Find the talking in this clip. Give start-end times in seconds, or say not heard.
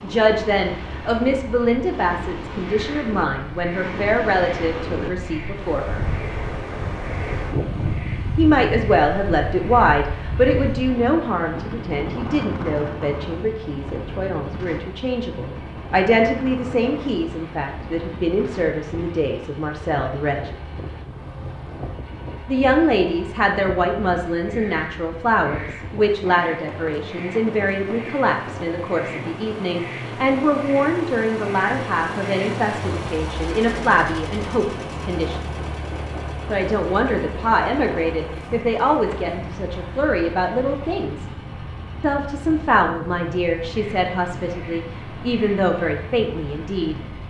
0.0-6.0, 8.3-20.6, 22.4-35.5, 36.5-41.2, 42.0-47.0.